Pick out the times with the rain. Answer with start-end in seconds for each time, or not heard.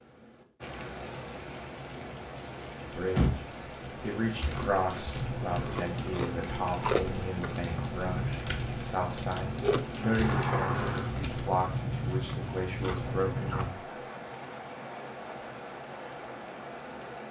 0.0-17.2.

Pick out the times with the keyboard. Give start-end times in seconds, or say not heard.
4.2-11.5.